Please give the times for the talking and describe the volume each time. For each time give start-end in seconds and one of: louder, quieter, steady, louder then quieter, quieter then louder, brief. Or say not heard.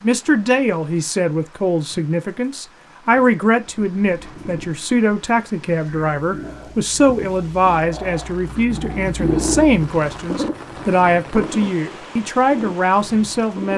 0.0-13.7 steady.